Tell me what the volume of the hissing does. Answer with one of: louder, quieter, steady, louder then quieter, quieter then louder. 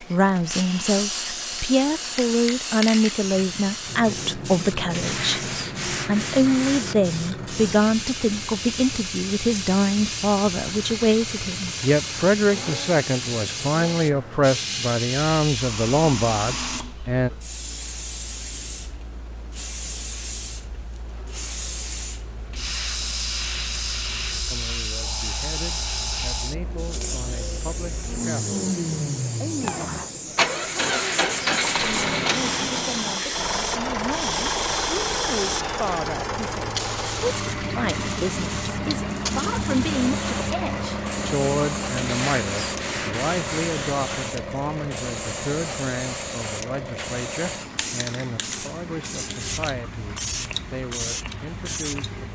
steady.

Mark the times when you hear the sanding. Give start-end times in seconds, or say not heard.
4.9-7.0, 22.5-24.6, 30.8-32.8, 42.0-43.8.